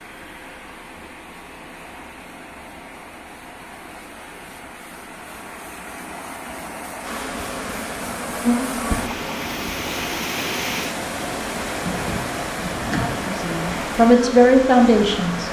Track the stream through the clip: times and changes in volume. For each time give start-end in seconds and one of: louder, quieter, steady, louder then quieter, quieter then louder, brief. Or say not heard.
0.0-15.4 louder.